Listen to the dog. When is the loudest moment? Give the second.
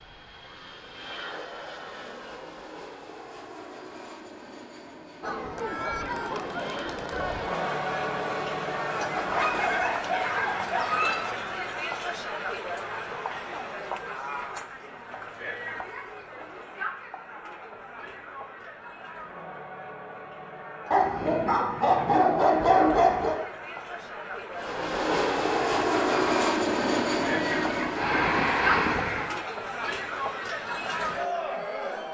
23 s.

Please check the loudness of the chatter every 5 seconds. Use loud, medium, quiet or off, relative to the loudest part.
off, loud, loud, medium, medium, loud, loud.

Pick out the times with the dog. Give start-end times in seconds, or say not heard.
9.2-11.2, 20.9-23.4.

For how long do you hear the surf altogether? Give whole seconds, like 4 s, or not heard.
not heard.